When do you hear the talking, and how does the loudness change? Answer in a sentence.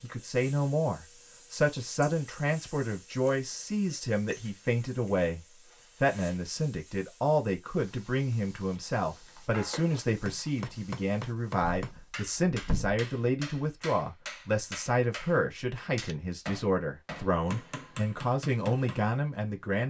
The talking can be heard from 0.0 to 19.8 s, at a steady volume.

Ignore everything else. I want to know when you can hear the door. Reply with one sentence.
You can hear the door from 11.6 to 13.0 s.